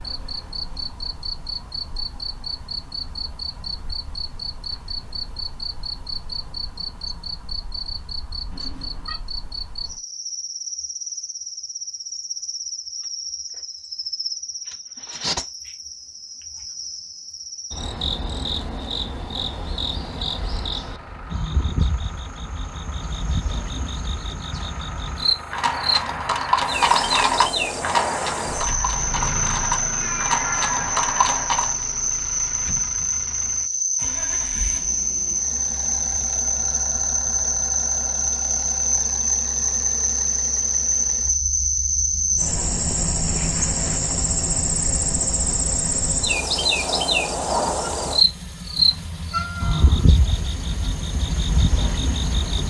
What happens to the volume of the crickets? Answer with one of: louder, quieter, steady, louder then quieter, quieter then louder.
louder.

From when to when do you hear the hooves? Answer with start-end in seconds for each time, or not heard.
25.2-31.9.